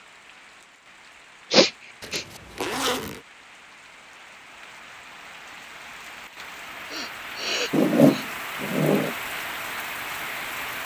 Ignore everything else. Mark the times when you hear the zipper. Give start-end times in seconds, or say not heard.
2.0-3.2, 7.7-9.2.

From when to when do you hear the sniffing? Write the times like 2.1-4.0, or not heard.
1.5-2.2, 6.9-8.2.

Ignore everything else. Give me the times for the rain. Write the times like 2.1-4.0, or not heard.
0.0-10.8.